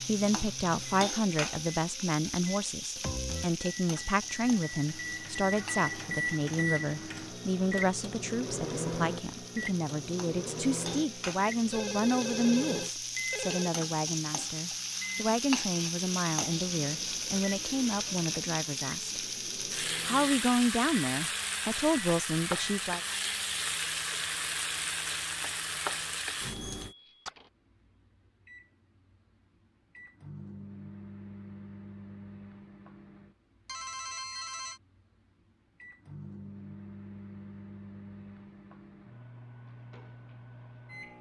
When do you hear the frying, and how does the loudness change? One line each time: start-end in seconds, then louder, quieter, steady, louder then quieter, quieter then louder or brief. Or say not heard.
0.0-26.9 quieter then louder.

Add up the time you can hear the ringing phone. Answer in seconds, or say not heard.
3 s.